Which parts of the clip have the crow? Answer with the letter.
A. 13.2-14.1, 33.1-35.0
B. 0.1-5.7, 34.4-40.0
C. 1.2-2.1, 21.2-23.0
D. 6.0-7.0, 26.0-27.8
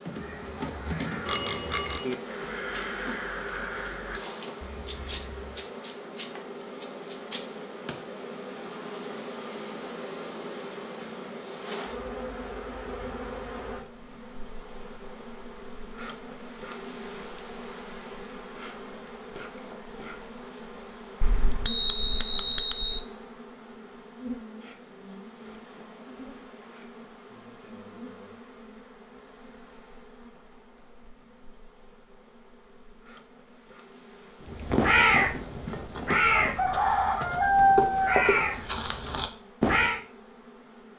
B.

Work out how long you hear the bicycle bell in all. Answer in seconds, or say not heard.
3 s.